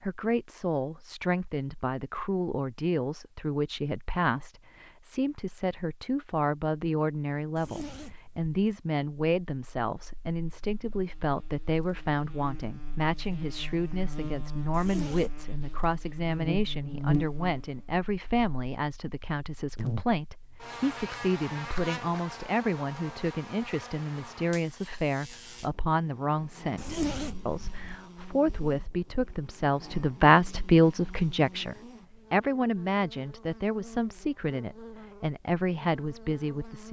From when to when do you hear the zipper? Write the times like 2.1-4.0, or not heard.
7.5-8.5, 14.7-15.4, 26.8-27.9.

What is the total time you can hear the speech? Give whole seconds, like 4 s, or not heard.
37 s.